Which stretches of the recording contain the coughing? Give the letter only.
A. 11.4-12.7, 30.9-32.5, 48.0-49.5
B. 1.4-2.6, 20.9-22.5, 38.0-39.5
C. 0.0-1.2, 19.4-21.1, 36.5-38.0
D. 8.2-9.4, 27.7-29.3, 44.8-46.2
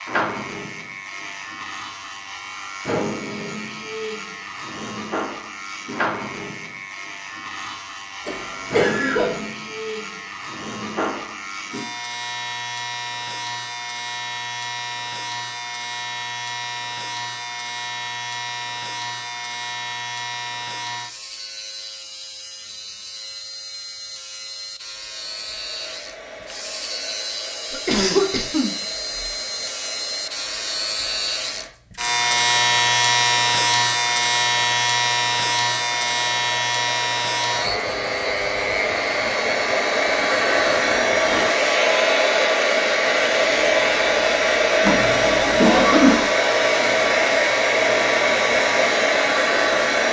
D.